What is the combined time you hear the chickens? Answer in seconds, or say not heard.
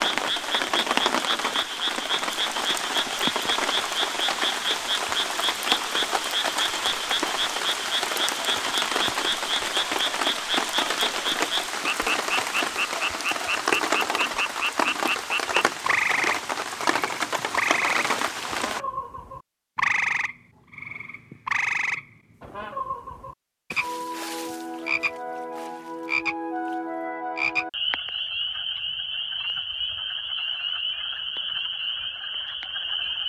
not heard.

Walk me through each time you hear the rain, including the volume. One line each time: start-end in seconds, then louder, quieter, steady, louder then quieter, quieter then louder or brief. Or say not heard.
0.0-18.8 steady.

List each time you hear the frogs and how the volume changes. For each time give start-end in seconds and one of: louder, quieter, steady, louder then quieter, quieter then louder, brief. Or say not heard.
0.0-33.2 steady.